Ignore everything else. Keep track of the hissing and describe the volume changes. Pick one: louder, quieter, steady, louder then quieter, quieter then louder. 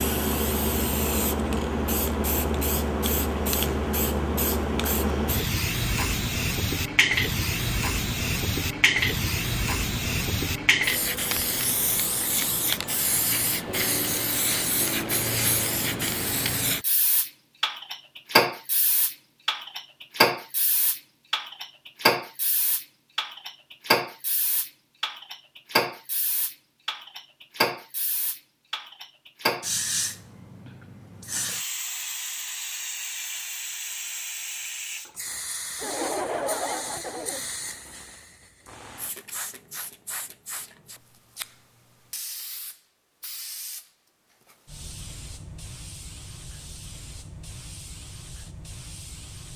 quieter.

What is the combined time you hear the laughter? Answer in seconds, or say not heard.
2 s.